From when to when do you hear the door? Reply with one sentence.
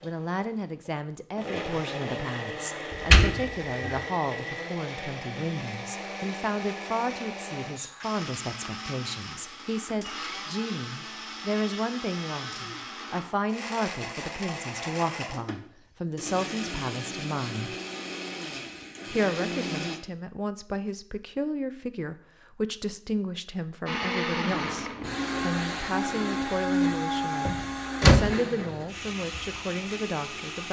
You can hear the door from 2.9 to 4.0 s and from 27.4 to 28.3 s.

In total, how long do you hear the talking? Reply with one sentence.
You can hear the talking for 29 seconds altogether.